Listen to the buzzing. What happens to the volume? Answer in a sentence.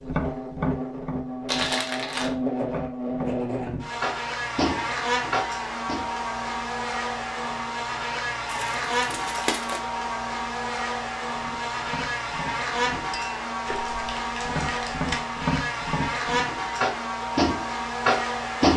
The volume of the buzzing stays about the same.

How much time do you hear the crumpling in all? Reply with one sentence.
You can hear the crumpling for 4 seconds altogether.